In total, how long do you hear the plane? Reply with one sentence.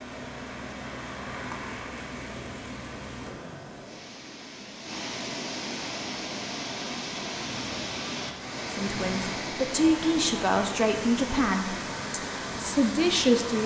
The plane can be heard for 5 seconds in total.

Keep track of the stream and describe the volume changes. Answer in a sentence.
The loudness of the stream goes up.